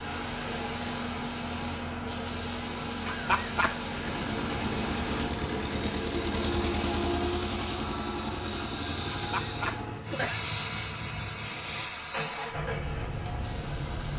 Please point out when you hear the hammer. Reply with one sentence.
You can't hear the hammer here.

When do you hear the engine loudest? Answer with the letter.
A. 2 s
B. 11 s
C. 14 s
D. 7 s
D.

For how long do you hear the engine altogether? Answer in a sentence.
You can hear the engine for 10 seconds altogether.